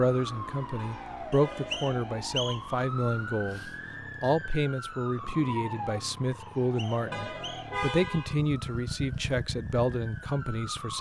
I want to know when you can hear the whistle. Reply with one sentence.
The whistle can be heard from 1.3 to 2.8 s and from 6.4 to 7.8 s.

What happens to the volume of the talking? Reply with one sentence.
The loudness of the talking stays about the same.